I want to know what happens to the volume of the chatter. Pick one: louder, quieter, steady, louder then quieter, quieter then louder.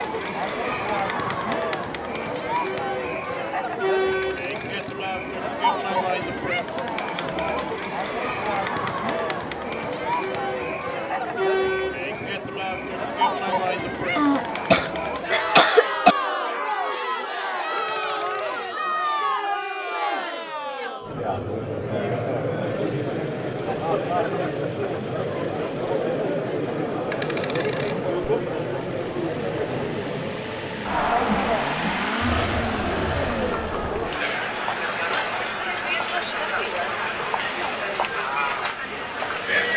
steady.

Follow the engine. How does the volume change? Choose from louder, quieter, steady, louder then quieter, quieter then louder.
louder then quieter.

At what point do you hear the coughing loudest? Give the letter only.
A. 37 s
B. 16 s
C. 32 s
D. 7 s
B.